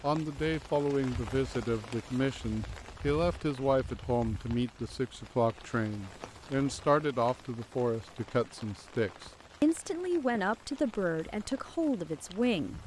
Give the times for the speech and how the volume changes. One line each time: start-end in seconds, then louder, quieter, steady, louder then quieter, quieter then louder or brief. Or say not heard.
0.0-12.8 steady.